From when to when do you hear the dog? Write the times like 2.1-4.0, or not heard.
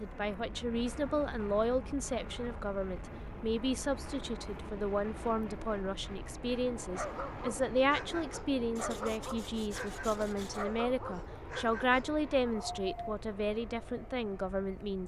7.0-13.2.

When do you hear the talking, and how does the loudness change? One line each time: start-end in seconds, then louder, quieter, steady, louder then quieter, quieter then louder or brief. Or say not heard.
0.0-15.0 steady.